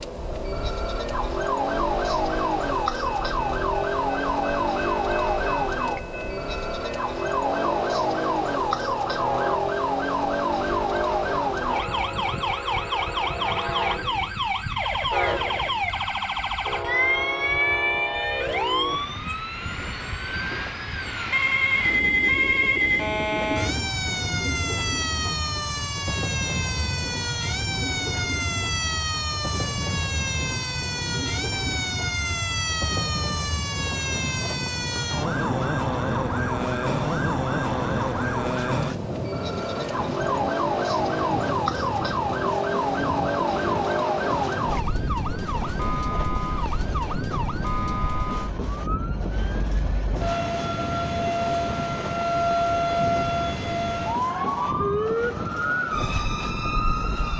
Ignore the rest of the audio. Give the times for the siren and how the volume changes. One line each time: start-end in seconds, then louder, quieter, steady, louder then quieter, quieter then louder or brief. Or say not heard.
0.0-57.3 steady.